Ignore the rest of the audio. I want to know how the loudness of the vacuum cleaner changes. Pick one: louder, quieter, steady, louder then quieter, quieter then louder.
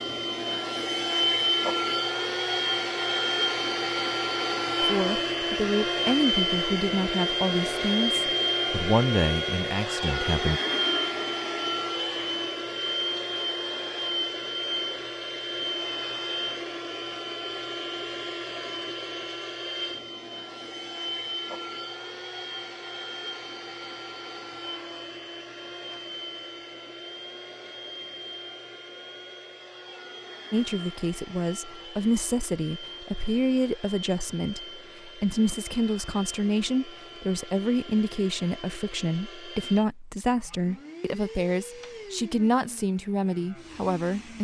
quieter.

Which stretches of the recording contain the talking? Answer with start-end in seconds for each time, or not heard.
4.8-10.6, 30.5-44.3.